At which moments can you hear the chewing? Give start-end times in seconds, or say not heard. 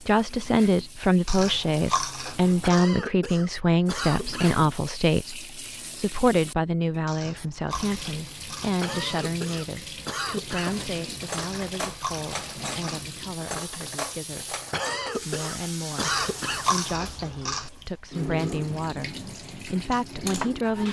1.2-2.9, 7.0-8.8, 11.3-13.1, 16.0-17.7.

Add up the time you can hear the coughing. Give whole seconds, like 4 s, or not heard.
6 s.